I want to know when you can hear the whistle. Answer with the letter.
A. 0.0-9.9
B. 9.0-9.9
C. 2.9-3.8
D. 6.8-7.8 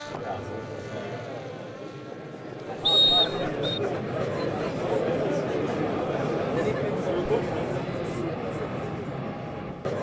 C.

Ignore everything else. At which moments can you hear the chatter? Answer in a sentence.
The chatter can be heard from 0.0 to 9.9 s.